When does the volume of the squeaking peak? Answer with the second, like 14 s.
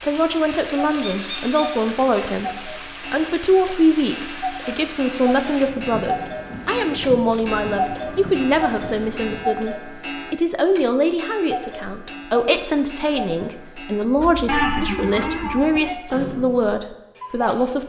15 s.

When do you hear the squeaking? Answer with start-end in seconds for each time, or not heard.
0.9-1.6, 14.4-15.9.